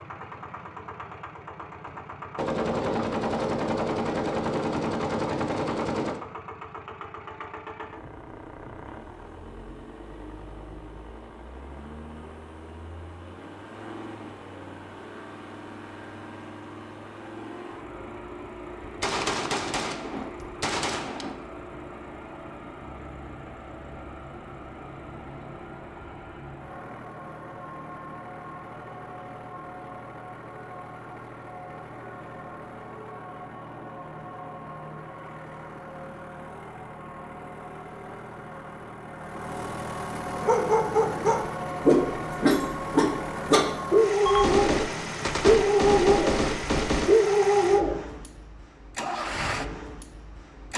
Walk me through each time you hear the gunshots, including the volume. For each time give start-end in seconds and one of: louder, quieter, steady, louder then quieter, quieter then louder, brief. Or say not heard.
1.9-6.2 steady
18.8-21.4 brief
44.2-47.1 brief.